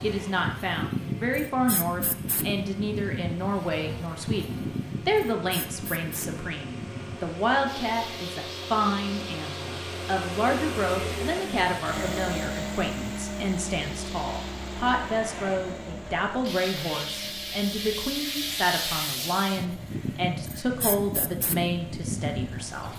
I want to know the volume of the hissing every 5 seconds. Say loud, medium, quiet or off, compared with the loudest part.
loud, medium, medium, loud, loud.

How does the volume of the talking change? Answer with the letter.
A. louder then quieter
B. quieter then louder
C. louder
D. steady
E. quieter
D.